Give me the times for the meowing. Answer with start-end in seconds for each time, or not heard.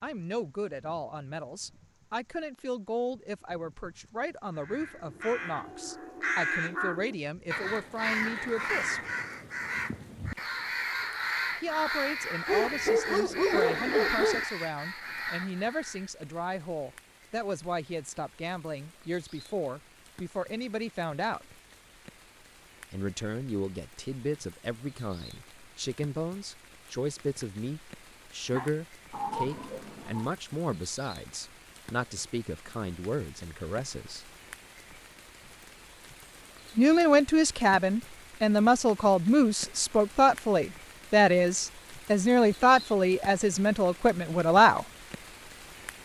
29.1-30.3.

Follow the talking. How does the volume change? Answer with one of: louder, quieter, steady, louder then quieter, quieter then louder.
louder.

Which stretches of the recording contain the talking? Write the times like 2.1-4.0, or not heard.
0.0-9.0, 11.6-21.4, 22.9-34.2, 36.8-44.9.